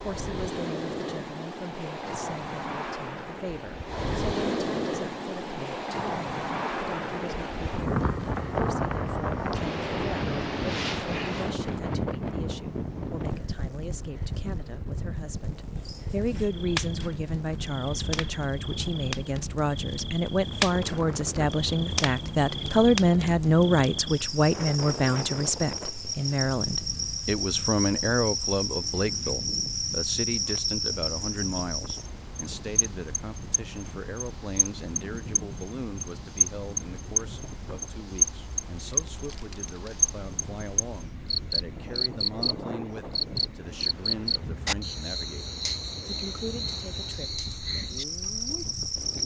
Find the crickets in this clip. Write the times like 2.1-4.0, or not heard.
15.3-49.2.